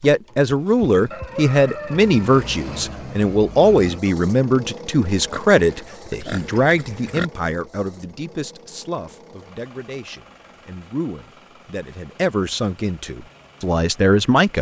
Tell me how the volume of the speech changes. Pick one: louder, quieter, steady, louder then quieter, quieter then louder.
quieter then louder.